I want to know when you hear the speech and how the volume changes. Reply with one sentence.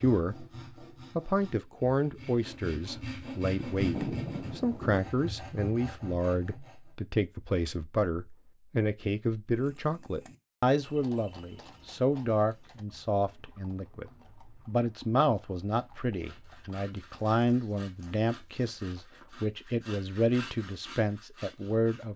The speech can be heard briefly from 0.0 to 0.5 s; and from 1.1 to 22.1 s, at a steady volume.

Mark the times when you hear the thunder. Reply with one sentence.
The thunder can be heard from 3.7 to 5.1 s.